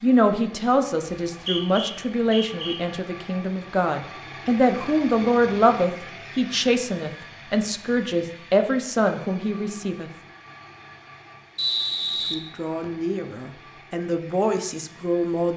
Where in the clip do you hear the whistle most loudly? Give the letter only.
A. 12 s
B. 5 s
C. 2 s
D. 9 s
A.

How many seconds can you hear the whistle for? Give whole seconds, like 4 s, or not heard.
3 s.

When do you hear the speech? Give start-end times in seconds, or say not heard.
0.0-10.1, 12.2-15.5.